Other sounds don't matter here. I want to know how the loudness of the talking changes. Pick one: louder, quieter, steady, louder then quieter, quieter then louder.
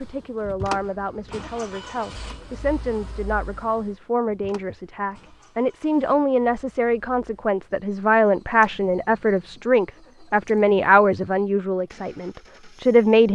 louder.